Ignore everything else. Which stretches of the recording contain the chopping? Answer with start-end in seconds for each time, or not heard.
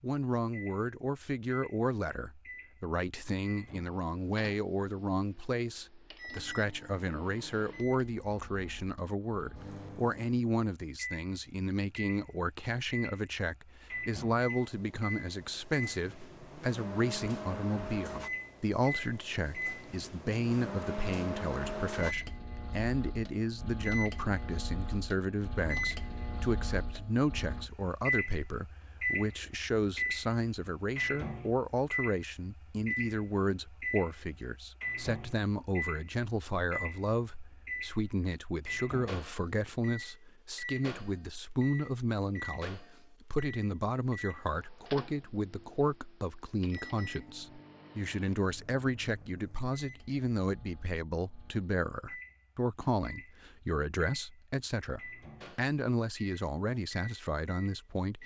not heard.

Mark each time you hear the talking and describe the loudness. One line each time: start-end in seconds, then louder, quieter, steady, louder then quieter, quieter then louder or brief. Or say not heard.
0.0-58.2 steady.